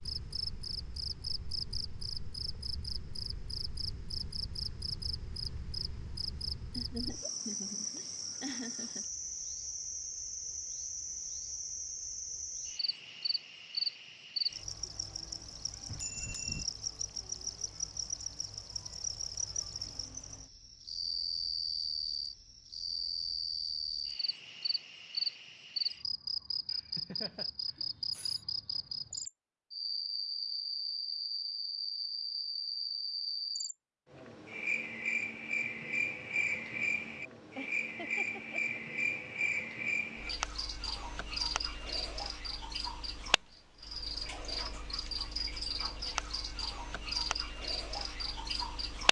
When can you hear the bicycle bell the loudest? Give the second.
16 s.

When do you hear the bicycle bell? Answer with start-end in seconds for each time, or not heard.
15.8-16.6, 27.8-28.4.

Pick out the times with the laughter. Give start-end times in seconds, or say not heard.
6.8-9.1, 26.7-27.5, 37.5-38.8.